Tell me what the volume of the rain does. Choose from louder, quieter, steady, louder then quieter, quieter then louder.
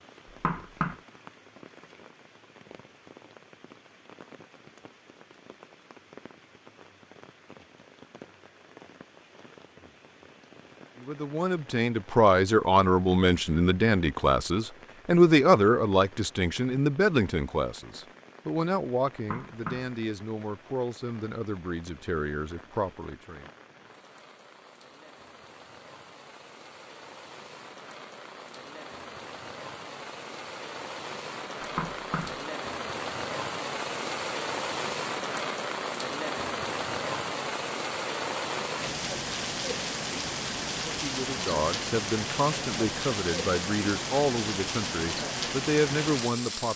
louder.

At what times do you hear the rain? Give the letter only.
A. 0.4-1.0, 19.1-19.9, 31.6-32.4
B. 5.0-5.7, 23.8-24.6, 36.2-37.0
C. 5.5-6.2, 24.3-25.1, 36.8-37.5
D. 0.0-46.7
D.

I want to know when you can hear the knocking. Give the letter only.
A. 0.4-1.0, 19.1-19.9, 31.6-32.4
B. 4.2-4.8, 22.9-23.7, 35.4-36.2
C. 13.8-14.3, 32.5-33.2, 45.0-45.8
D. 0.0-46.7
A.